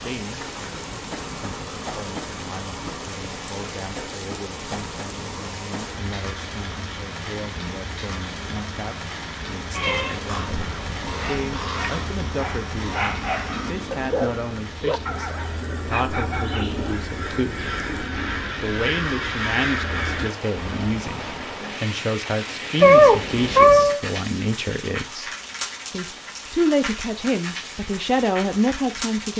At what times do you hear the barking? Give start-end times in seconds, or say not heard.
11.2-16.8.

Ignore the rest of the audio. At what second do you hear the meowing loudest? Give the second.
23 s.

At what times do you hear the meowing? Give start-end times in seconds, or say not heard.
9.7-10.7, 22.8-24.0.